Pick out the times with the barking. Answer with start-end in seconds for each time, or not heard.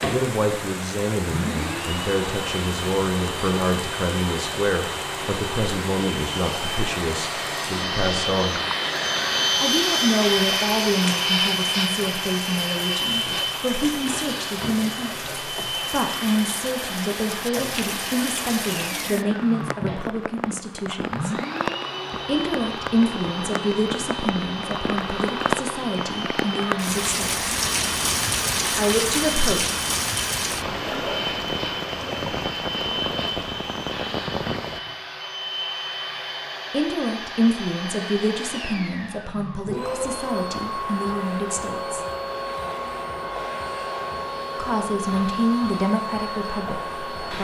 not heard.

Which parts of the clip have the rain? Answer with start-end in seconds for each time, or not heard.
0.0-34.8.